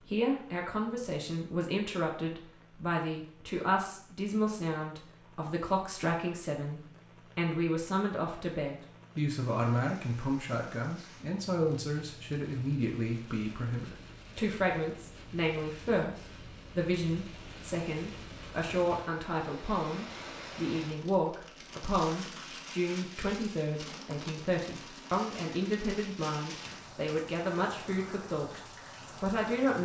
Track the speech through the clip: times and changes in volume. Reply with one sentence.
You can hear the speech from 0.0 to 28.6 s, at a steady volume; and briefly from 29.2 to 29.7 s.